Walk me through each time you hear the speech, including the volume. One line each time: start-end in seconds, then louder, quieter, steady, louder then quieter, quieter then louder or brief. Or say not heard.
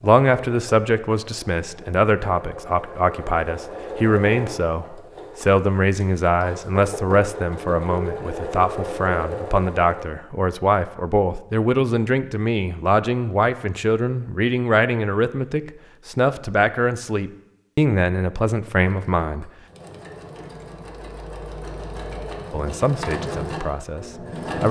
0.0-19.5 steady
22.5-24.6 brief.